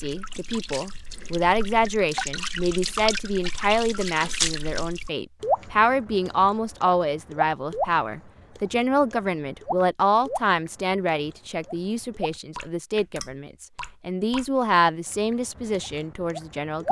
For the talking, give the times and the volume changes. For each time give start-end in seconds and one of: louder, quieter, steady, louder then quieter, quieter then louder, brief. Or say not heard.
0.0-16.8 steady.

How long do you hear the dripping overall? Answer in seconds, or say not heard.
17 s.